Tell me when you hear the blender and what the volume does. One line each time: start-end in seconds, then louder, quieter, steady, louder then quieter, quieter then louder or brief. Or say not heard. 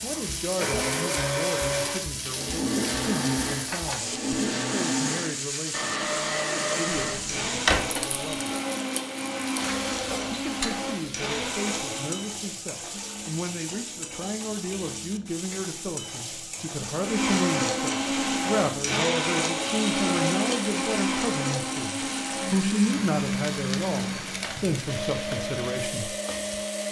0.0-12.2 steady
16.9-26.8 quieter.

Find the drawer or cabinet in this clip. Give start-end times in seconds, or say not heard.
7.0-8.1.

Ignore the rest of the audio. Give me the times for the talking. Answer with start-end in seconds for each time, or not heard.
0.0-8.6, 10.2-26.1.